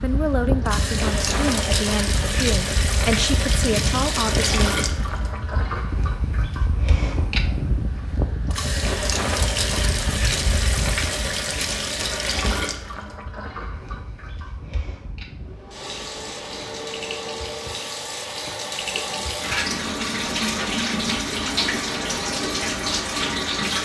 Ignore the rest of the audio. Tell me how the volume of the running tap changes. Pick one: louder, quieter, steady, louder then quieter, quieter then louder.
quieter then louder.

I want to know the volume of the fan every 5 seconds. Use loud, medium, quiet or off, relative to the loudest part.
loud, loud, medium, medium, off.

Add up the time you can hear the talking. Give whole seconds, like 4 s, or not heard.
5 s.